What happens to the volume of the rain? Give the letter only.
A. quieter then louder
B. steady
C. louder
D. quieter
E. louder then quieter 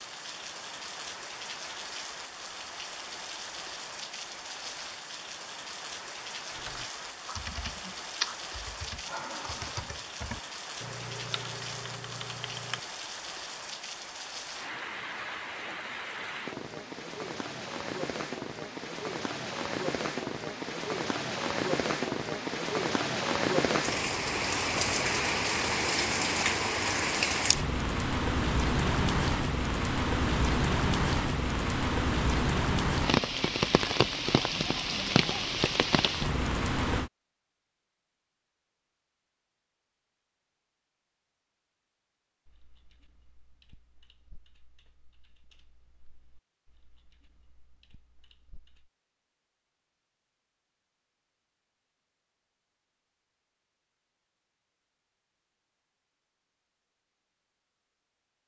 C.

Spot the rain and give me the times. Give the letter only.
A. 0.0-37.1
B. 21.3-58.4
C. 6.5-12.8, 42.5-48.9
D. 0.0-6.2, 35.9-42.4
A.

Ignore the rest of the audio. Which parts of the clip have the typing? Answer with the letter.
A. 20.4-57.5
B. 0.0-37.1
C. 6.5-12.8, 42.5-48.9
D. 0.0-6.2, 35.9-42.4
C.